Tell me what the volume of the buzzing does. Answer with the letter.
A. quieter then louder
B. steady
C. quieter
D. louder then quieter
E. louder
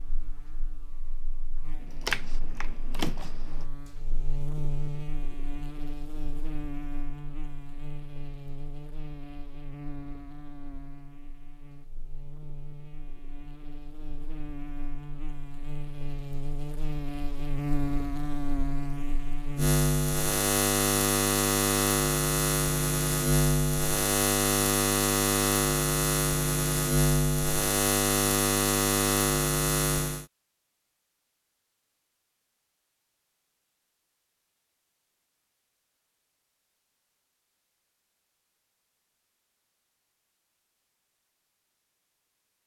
E.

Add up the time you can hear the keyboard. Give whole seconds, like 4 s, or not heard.
2 s.